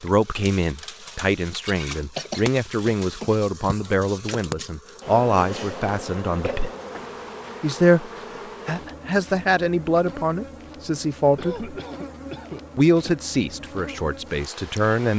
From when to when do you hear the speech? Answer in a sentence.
You can hear the speech from 0.0 to 6.7 s, from 7.6 to 11.7 s and from 12.8 to 15.1 s.